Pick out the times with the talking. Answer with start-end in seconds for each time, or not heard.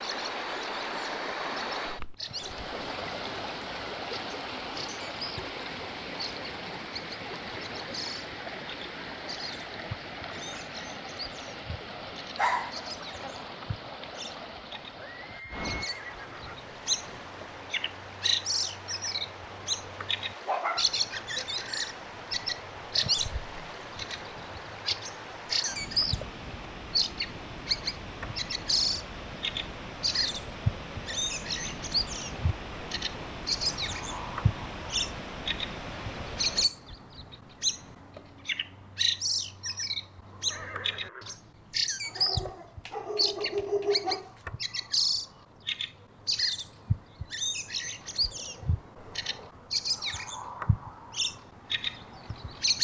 not heard.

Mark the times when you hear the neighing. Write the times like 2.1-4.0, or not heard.
14.9-16.6, 40.5-41.4.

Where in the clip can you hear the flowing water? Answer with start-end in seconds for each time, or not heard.
0.0-36.7.